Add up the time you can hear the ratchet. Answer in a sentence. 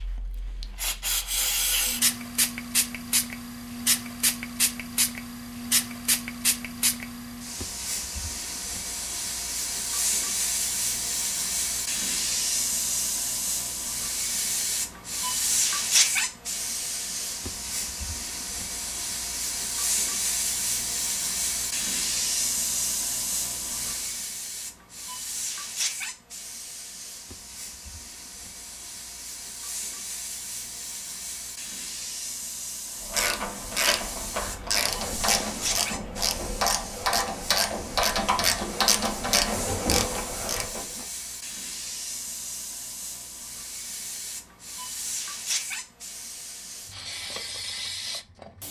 The ratchet can be heard for 8 seconds in total.